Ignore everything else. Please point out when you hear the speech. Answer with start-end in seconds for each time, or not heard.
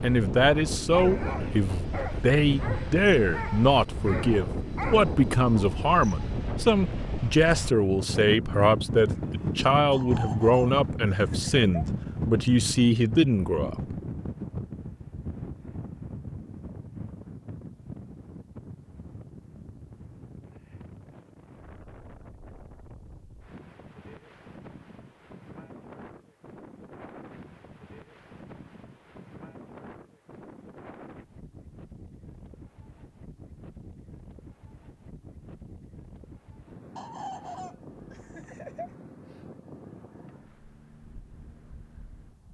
0.0-13.9.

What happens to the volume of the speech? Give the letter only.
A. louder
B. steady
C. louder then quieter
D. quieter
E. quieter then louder
B.